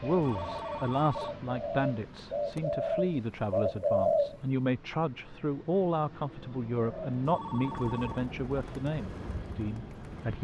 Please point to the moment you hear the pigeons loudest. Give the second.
4 s.